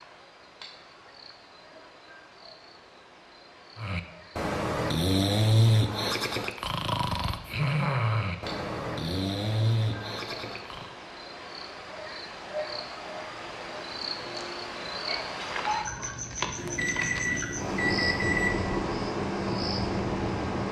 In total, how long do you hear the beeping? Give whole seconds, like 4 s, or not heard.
2 s.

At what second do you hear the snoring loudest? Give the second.
6 s.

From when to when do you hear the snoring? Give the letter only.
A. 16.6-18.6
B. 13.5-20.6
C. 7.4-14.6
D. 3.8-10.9
D.